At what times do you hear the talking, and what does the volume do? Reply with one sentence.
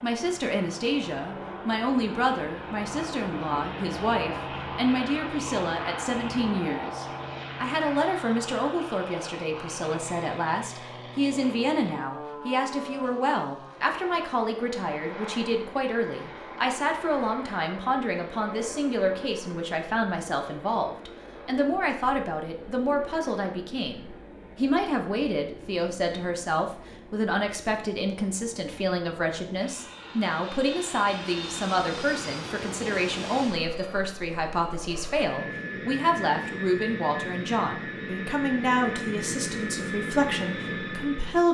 You can hear the talking from 0.0 to 41.5 s, at a steady volume.